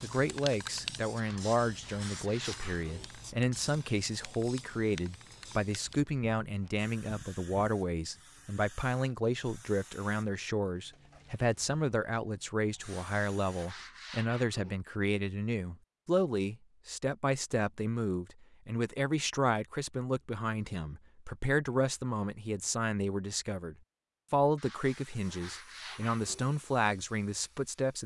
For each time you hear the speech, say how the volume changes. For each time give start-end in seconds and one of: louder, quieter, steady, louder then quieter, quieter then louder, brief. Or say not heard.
0.0-28.0 steady.